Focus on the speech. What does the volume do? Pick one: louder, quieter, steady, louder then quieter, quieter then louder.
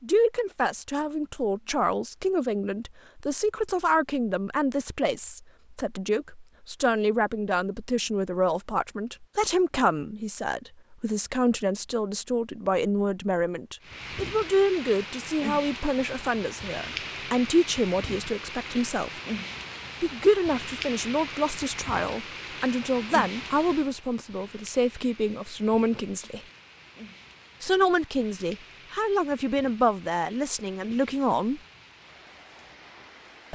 steady.